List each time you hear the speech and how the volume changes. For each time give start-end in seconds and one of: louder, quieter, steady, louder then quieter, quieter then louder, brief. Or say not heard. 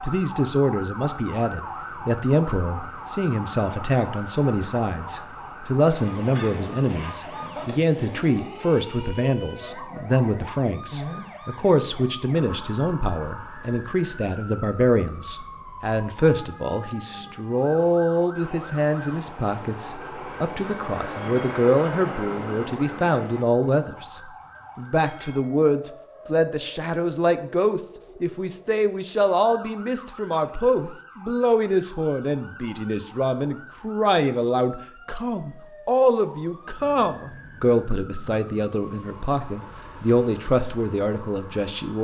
0.0-42.0 steady.